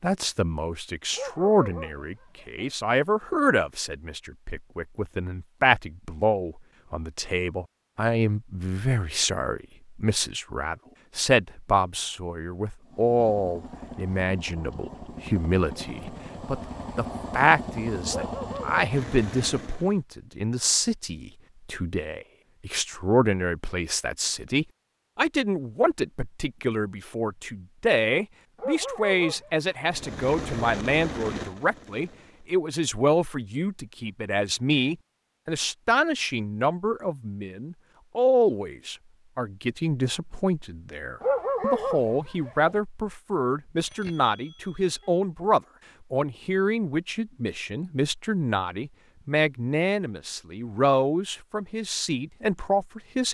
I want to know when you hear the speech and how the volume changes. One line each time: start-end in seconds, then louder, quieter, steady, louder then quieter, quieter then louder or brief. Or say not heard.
0.0-53.2 steady.